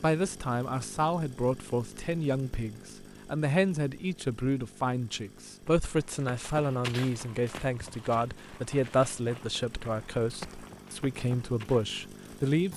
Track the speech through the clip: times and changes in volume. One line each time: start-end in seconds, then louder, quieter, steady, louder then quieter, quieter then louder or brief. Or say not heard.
0.0-12.7 steady.